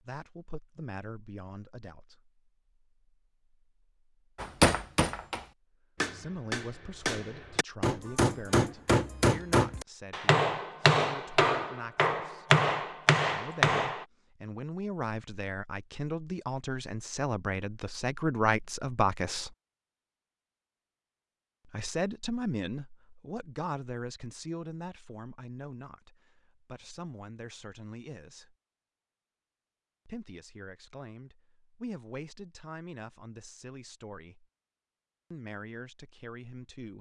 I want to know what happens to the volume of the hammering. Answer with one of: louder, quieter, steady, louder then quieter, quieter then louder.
louder.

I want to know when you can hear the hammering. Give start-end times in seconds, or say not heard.
4.4-14.1.